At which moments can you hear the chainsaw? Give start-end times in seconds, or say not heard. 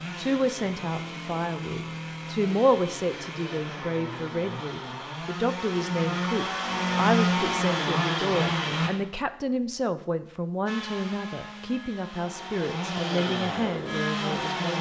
0.0-8.9, 10.7-14.7.